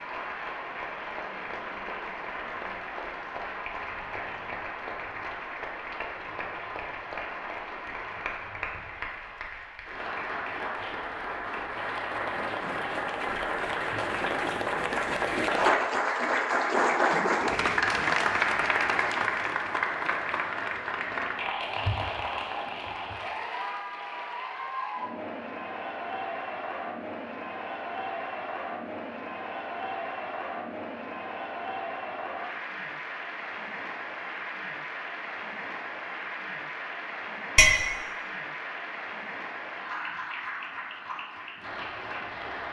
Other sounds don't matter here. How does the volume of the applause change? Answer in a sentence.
The loudness of the applause goes up, then down.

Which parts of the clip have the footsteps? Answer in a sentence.
The footsteps can't be heard in this clip.